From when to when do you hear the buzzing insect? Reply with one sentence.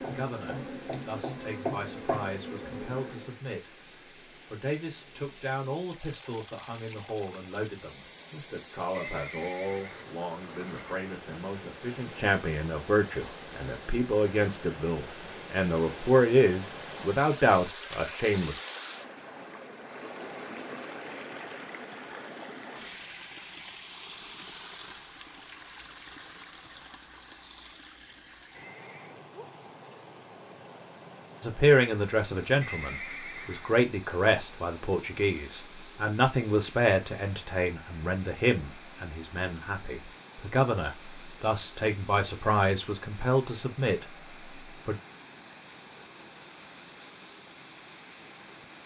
The buzzing insect can be heard from 0.0 to 3.4 s.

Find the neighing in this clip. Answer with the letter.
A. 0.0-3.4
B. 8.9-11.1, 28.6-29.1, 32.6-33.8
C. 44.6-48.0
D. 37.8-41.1
B.